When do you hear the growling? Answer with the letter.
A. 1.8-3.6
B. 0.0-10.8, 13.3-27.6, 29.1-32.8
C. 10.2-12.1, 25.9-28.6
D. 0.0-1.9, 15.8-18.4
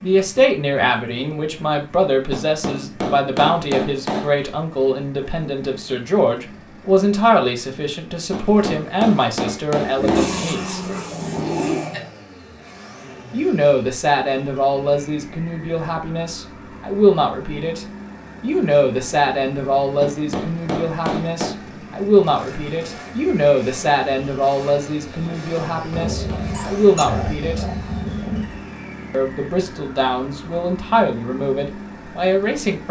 C.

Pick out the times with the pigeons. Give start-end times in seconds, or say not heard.
9.9-11.8.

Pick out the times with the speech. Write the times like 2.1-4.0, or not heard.
0.0-10.8, 13.3-27.6, 29.1-32.8.